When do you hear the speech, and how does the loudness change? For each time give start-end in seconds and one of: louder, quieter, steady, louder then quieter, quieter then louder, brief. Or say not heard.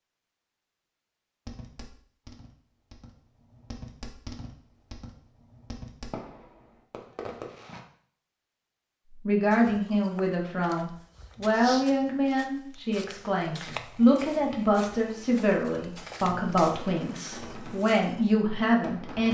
9.1-19.2 steady.